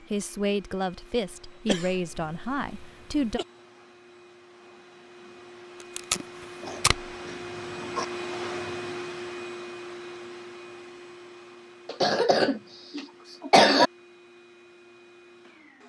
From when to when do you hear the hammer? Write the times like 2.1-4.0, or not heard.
not heard.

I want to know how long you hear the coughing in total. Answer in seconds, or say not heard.
5 s.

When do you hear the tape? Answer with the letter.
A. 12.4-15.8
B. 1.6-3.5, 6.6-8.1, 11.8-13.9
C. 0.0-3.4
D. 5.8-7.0
D.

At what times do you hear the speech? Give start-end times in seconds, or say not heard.
0.0-3.4.